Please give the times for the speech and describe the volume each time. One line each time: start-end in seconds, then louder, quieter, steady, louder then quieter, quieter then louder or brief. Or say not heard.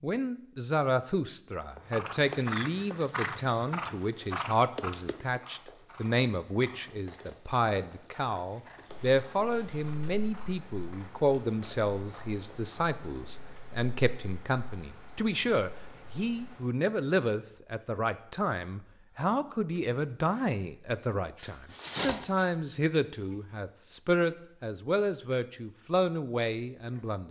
0.0-27.2 steady.